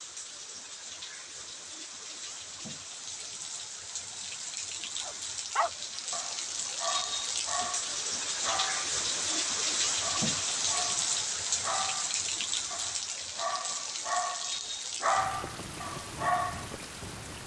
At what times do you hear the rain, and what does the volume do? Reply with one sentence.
You can hear the rain from 0.0 to 17.4 s, getting louder then quieter.